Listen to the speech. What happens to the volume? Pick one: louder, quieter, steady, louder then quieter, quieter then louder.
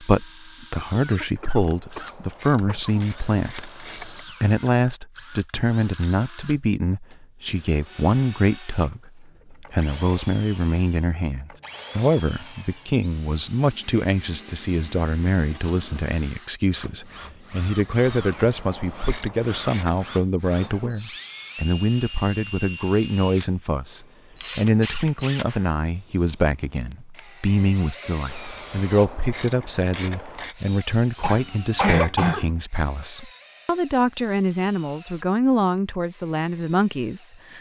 steady.